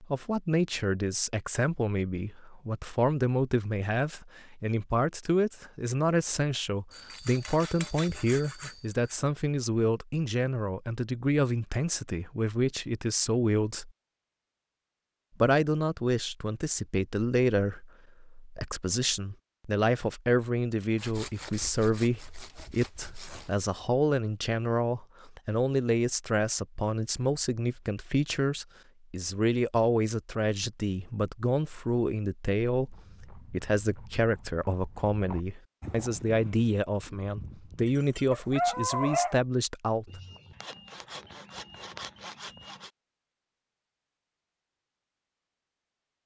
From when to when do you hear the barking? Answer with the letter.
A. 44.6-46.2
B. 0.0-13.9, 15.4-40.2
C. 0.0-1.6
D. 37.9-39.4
D.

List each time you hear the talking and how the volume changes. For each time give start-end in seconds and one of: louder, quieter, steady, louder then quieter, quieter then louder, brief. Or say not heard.
0.0-13.9 steady
15.4-40.2 steady.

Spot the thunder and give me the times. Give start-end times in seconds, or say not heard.
not heard.